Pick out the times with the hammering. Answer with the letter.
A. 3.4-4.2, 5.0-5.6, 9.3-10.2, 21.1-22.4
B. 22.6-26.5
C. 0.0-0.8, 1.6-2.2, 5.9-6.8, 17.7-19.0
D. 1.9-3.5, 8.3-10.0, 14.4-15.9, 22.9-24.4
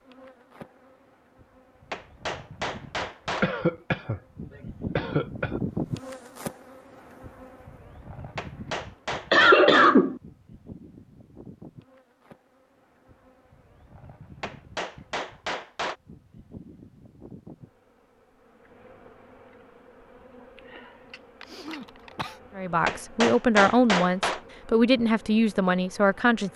D.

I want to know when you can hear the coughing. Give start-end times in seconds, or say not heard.
3.4-4.2, 5.0-5.6, 9.3-10.2, 21.1-22.4.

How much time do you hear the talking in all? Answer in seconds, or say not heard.
4 s.